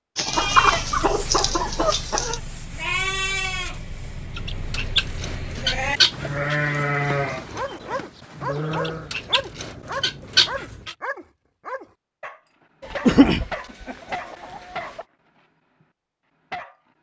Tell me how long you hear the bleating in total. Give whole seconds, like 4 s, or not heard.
9 s.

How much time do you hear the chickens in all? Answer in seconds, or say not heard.
9 s.